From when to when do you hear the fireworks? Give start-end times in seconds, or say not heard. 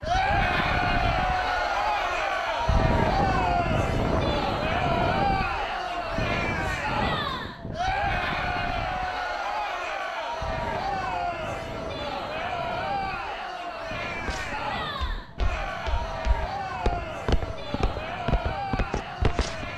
not heard.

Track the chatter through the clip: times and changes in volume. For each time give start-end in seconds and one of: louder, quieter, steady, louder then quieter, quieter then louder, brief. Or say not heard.
0.0-19.7 quieter.